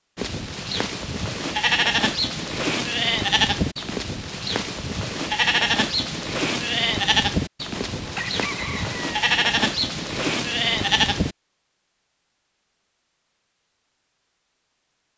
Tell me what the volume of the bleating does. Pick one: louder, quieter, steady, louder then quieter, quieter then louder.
steady.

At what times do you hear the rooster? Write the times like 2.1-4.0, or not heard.
7.8-9.2.